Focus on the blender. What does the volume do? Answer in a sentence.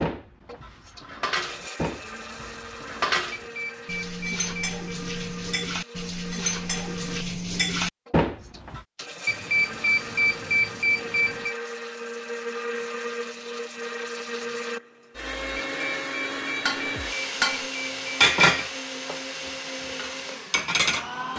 The loudness of the blender goes up.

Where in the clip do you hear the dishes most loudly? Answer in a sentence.
The loudest moment of the dishes is at 18 seconds.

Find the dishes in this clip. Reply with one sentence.
The dishes can be heard from 0.0 to 8.8 s and from 16.6 to 21.3 s.